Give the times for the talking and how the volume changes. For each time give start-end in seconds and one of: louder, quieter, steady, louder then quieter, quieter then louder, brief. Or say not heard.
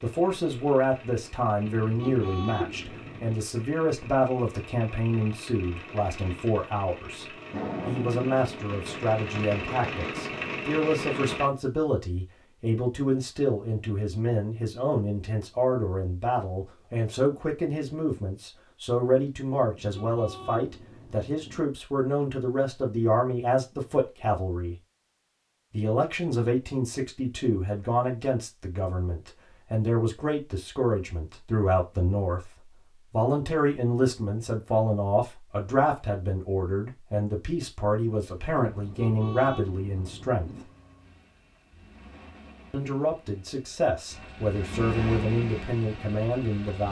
0.0-24.8 steady
25.7-40.6 steady
42.7-46.8 louder.